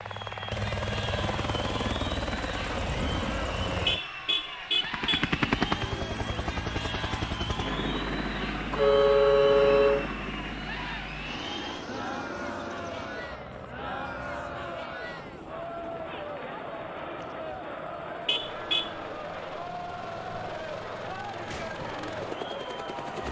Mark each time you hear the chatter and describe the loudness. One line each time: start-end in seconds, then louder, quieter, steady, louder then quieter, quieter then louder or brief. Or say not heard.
0.0-23.2 steady.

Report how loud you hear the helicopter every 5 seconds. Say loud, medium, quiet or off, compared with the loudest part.
loud, loud, medium, quiet, medium.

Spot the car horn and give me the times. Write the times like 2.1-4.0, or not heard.
3.9-5.3, 8.7-10.2, 18.2-18.9.